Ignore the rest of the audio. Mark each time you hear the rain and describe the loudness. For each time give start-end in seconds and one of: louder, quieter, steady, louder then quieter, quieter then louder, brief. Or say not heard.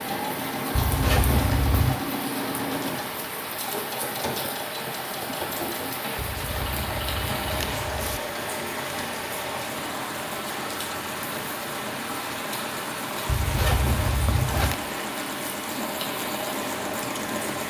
0.0-17.6 steady.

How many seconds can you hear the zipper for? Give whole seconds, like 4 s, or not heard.
5 s.